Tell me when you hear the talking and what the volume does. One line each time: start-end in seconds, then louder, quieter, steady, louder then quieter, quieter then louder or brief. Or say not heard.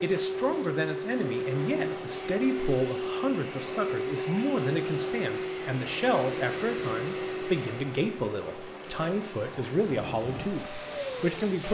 0.0-11.6 steady.